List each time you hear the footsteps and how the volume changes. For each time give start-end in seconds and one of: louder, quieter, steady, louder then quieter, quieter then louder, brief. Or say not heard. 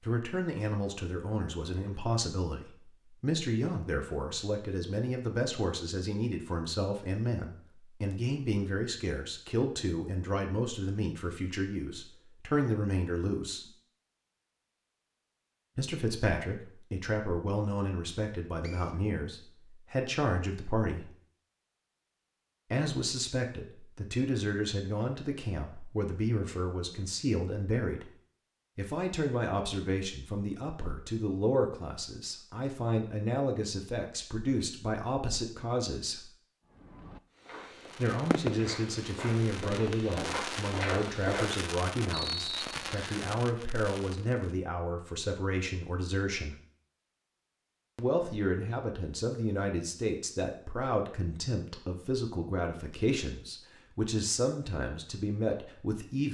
37.3-41.7 louder.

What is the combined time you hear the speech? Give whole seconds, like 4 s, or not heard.
49 s.